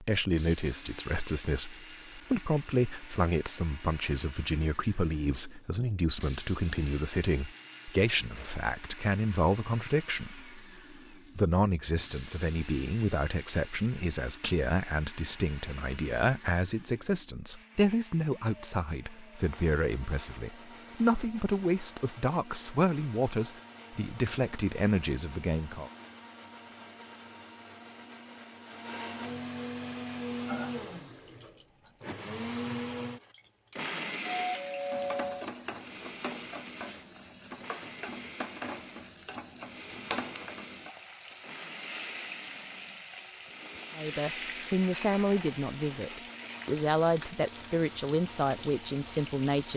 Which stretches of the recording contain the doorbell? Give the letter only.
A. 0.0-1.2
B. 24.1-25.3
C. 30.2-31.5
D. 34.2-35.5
D.